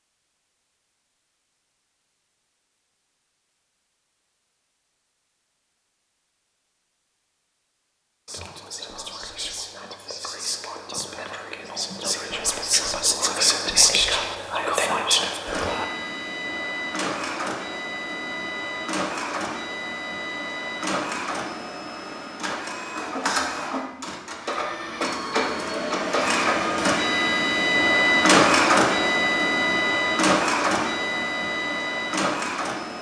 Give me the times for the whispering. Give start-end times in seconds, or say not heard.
8.2-15.8.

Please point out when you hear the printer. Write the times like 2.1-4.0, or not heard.
15.4-32.9.